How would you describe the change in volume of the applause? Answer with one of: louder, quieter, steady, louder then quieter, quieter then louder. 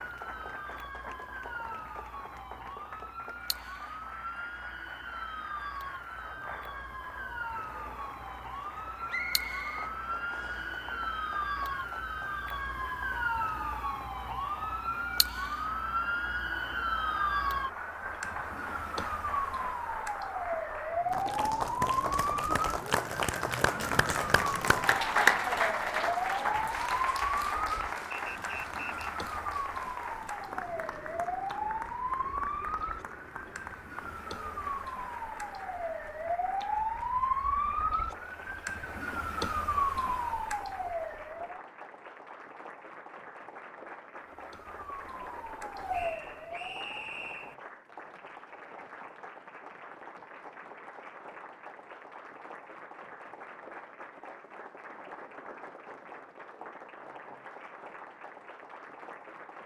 louder then quieter.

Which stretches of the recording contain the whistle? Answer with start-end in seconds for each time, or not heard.
9.1-10.7, 28.1-29.1, 45.9-47.5.